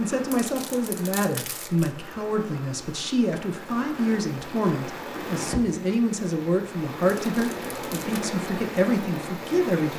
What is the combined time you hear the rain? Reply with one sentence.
The rain can be heard for 10 seconds in total.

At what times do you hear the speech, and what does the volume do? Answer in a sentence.
You can hear the speech from 0.0 to 9.9 s, at a steady volume.